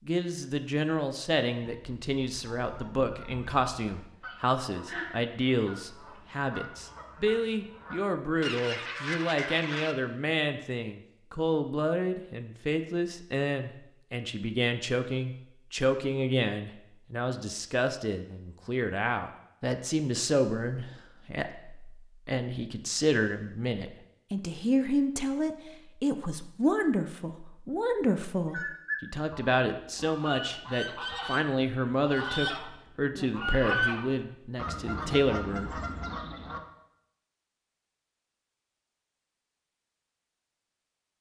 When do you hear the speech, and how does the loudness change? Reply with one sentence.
The speech can be heard from 0.1 to 35.8 s, at a steady volume.